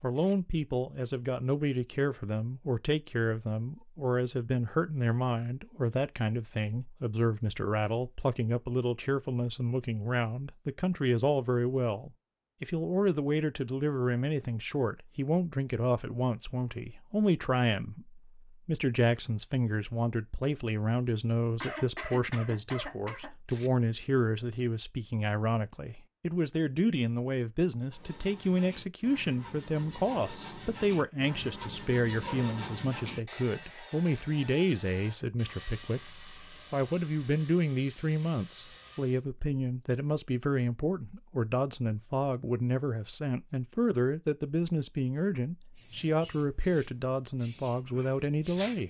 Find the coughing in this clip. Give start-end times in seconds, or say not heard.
21.6-23.3.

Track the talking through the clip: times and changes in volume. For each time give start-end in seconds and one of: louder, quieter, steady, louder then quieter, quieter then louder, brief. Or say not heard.
0.0-48.8 steady.